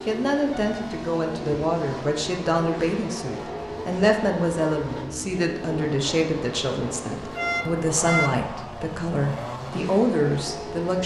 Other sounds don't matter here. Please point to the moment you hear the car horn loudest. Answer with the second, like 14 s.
8 s.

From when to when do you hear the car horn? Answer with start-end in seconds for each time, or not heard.
0.5-0.9, 7.3-8.4.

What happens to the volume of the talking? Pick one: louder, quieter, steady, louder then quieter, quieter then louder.
steady.